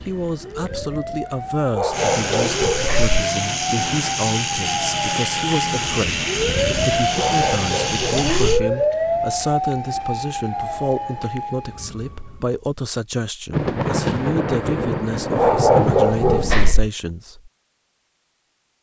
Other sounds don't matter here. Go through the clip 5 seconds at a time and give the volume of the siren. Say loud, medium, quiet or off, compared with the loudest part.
medium, loud, medium, off.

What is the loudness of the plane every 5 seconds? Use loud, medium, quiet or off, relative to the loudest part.
loud, loud, off, off.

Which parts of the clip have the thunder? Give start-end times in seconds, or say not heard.
13.5-16.8.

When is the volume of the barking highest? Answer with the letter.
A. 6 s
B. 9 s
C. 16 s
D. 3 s
C.